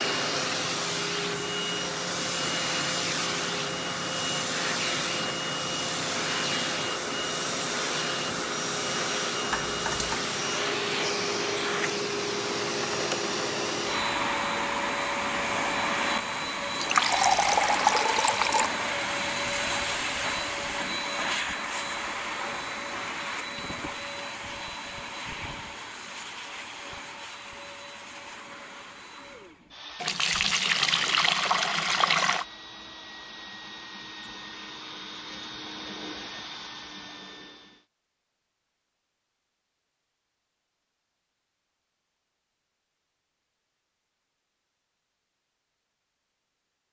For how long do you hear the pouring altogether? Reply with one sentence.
You can hear the pouring for 4 seconds altogether.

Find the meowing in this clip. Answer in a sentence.
You can hear the meowing from 9.5 to 10.2 s.